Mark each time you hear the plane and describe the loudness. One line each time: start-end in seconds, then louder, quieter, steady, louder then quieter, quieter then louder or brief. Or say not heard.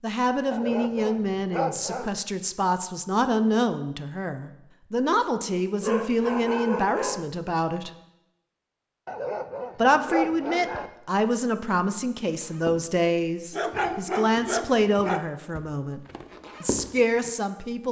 not heard.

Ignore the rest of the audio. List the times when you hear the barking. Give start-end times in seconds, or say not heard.
0.5-2.1, 5.8-7.3, 9.1-10.9, 13.5-15.2.